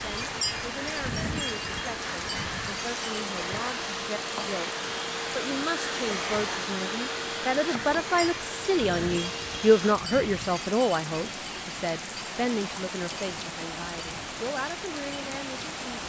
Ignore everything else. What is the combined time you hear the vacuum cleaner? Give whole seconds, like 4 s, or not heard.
10 s.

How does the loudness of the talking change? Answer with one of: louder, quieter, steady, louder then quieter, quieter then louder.
louder then quieter.